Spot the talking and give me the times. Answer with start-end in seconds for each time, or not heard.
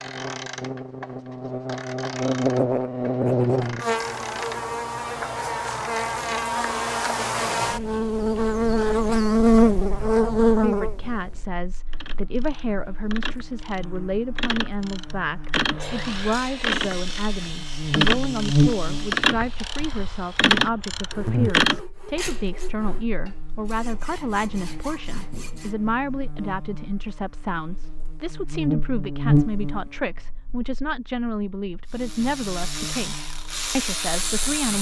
10.5-34.7.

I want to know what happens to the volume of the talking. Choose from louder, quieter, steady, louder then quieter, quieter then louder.
steady.